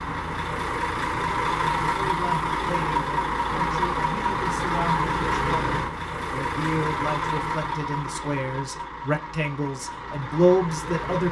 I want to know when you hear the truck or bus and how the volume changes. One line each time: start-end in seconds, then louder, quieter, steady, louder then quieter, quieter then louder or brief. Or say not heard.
0.0-11.2 quieter.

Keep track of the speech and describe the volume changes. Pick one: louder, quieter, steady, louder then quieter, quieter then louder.
louder.